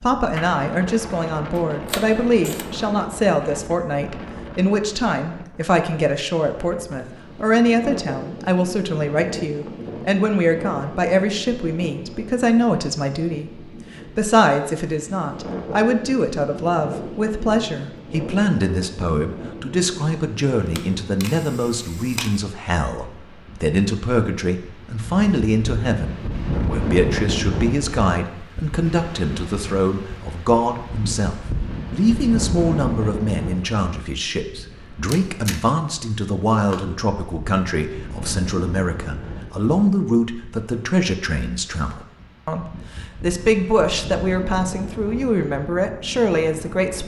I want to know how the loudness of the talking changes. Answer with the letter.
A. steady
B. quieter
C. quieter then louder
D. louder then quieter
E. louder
A.